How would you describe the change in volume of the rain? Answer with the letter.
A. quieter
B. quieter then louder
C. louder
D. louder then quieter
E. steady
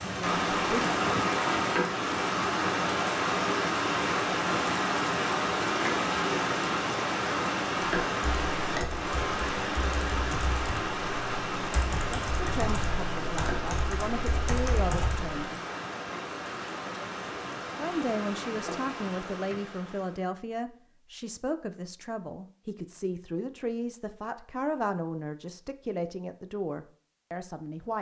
A.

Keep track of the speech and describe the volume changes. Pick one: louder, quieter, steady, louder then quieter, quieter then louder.
steady.